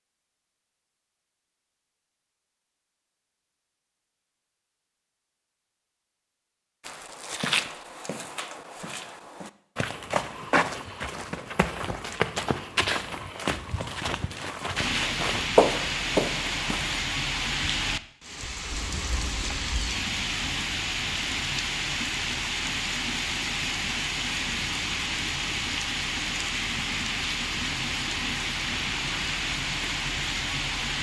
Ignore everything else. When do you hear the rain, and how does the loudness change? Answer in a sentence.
You can hear the rain from 14.8 to 30.9 s, at a steady volume.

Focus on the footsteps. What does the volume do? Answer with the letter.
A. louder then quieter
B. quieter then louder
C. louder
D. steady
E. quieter
C.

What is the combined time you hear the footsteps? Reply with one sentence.
You can hear the footsteps for 10 seconds altogether.